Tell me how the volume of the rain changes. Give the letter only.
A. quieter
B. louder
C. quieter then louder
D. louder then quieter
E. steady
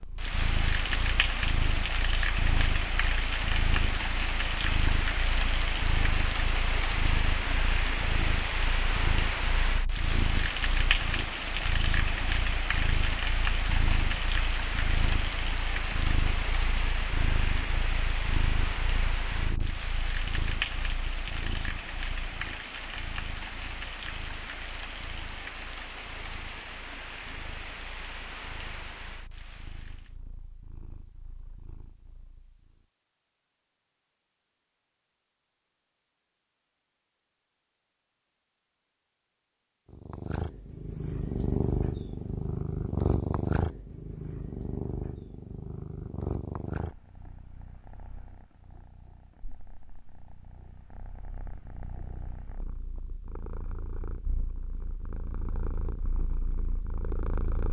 A.